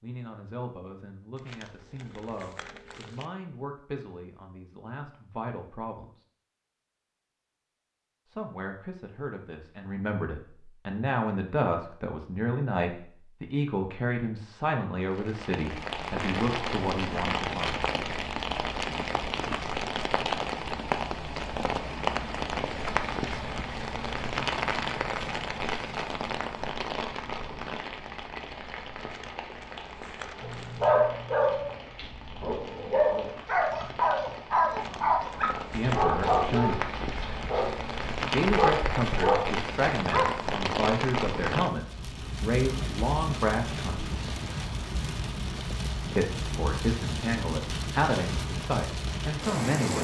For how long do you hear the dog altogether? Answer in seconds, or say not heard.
10 s.